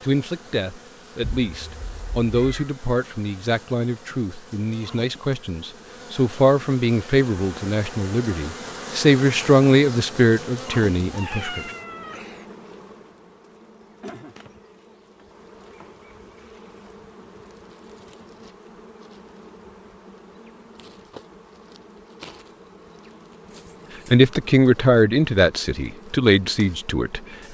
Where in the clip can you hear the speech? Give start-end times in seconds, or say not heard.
0.0-11.6, 24.1-27.4.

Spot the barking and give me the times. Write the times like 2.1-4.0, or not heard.
not heard.